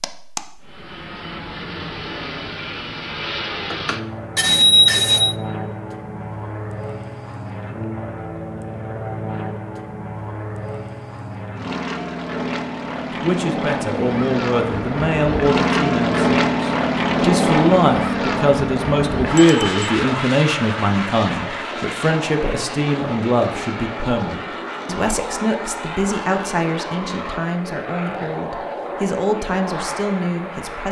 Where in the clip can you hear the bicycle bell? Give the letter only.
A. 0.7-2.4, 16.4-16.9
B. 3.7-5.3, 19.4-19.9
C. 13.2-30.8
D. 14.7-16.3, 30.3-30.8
B.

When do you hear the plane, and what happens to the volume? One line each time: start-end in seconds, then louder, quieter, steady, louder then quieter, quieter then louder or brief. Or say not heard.
0.0-30.8 louder then quieter.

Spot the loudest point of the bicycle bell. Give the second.
5 s.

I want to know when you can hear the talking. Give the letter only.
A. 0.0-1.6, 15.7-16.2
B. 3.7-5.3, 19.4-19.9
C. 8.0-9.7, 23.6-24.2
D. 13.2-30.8
D.